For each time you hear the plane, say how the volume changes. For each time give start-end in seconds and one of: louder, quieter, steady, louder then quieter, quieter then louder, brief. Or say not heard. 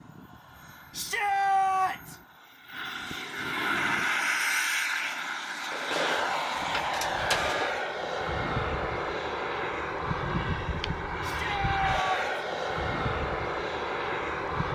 0.0-14.6 louder.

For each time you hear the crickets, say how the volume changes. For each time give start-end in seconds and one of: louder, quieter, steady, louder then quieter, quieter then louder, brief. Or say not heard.
not heard.